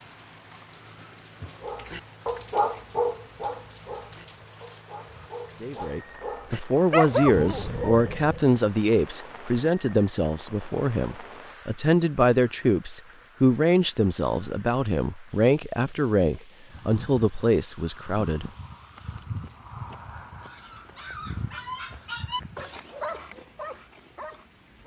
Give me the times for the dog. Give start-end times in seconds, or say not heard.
1.6-8.5, 20.4-24.8.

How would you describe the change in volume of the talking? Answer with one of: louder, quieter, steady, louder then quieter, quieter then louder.
steady.